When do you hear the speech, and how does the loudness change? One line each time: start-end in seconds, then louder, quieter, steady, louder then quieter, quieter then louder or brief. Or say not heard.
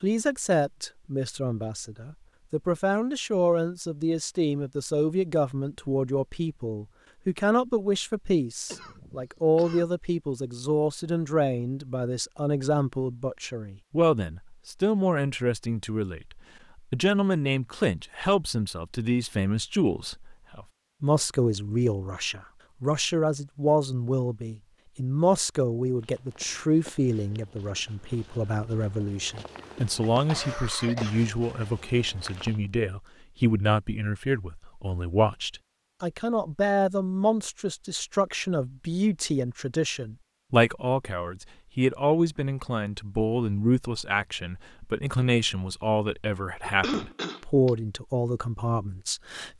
0.0-49.5 steady.